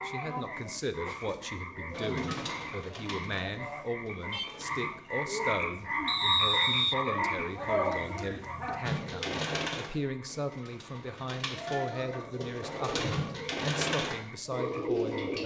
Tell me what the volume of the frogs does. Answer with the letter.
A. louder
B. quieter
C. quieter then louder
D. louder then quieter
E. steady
D.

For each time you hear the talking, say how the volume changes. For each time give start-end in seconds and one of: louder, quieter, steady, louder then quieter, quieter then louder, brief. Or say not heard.
0.0-15.4 steady.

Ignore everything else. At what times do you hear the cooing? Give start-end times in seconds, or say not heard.
1.9-5.0, 8.8-15.4.